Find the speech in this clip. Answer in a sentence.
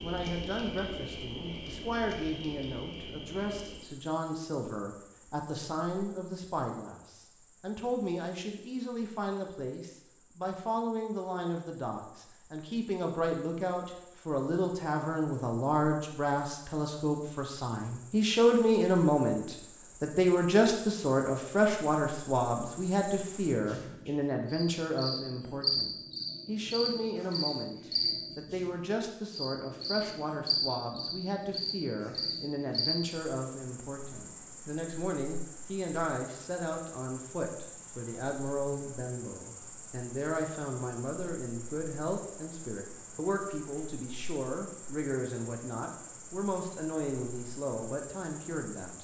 You can hear the speech from 0.0 to 48.9 s.